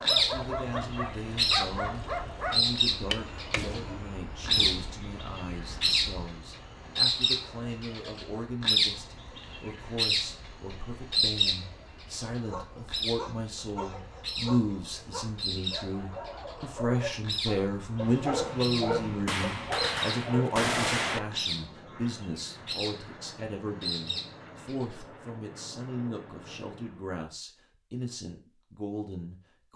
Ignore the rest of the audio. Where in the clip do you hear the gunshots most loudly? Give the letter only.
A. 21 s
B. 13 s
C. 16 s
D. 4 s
A.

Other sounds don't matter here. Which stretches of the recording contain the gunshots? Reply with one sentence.
You can hear the gunshots from 3.4 to 5.0 s and from 19.2 to 21.2 s.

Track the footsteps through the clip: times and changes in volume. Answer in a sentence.
The footsteps can't be heard in this clip.